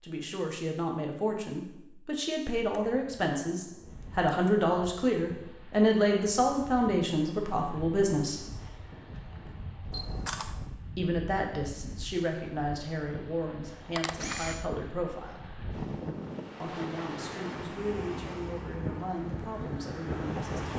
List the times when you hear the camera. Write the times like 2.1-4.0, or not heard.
2.7-4.3, 9.9-10.7, 13.9-14.7.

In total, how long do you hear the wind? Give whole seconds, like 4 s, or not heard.
17 s.